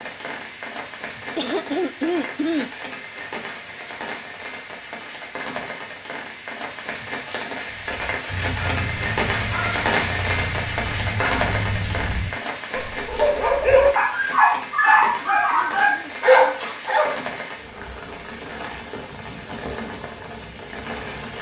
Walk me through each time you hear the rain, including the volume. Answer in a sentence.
The rain can be heard from 0.0 to 21.3 s, getting louder then quieter.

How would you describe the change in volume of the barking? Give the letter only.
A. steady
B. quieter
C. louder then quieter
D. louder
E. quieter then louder
D.